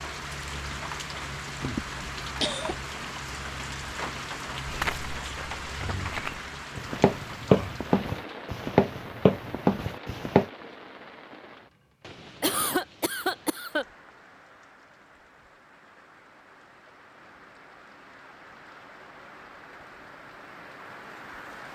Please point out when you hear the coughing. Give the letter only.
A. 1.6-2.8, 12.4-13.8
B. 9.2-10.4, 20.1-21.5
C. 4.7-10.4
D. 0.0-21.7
A.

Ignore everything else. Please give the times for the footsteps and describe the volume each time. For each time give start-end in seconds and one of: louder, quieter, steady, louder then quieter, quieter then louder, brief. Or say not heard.
4.7-10.4 louder.